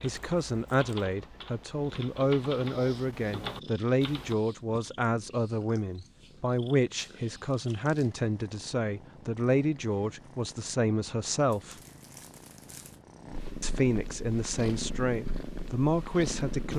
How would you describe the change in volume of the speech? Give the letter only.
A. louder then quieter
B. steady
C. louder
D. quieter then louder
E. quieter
B.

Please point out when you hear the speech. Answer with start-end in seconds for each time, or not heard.
0.0-11.8, 13.6-16.7.